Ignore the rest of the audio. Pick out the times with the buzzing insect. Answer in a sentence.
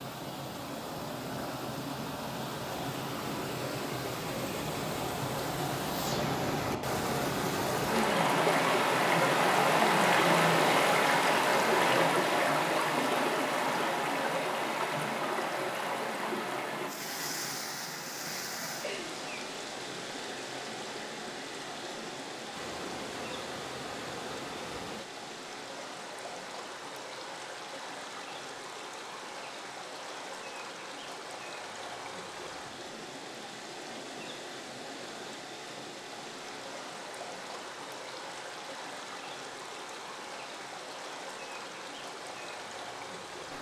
The buzzing insect can be heard from 22.5 to 25.1 s.